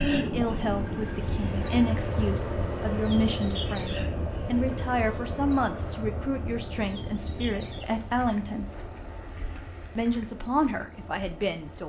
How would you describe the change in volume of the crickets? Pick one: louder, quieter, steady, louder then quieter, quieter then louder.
quieter.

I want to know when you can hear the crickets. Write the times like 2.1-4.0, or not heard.
0.0-11.8.